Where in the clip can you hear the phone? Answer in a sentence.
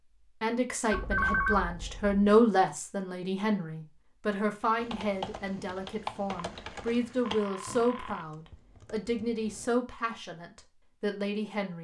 The phone can be heard from 0.9 to 2.4 s and from 6.3 to 8.2 s.